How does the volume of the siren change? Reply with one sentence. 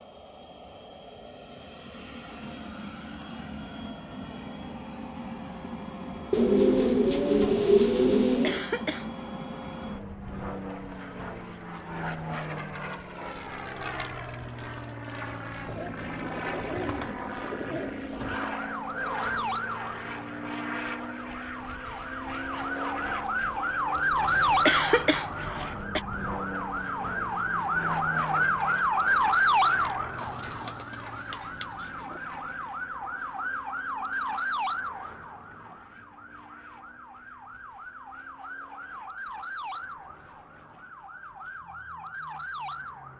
The loudness of the siren goes up, then down.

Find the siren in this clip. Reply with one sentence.
The siren can be heard from 18.2 to 43.1 s.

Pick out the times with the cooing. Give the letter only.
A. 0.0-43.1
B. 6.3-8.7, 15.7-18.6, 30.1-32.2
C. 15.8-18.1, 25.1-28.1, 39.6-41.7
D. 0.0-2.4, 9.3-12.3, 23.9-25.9
B.